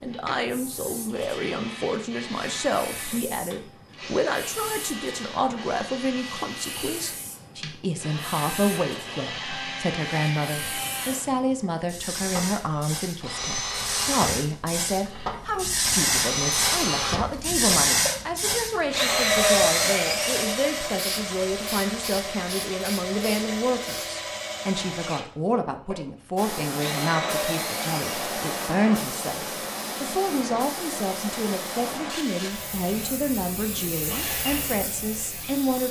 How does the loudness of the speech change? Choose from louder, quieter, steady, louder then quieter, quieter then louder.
steady.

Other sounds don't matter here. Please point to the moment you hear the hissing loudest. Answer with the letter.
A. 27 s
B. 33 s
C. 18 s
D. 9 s
C.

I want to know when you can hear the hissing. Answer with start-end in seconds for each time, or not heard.
0.2-24.2, 26.4-35.8.